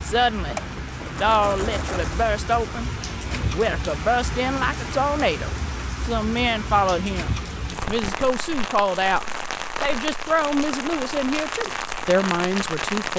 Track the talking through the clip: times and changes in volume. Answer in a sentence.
The talking can be heard from 0.0 to 13.1 s, at a steady volume.